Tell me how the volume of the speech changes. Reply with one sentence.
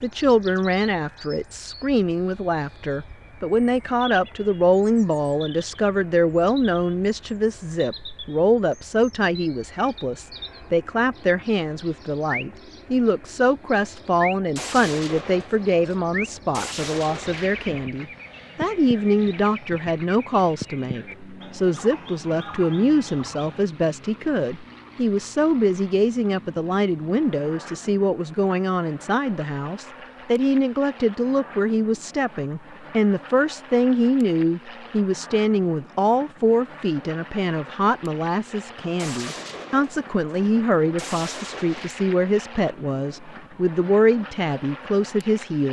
The volume of the speech stays about the same.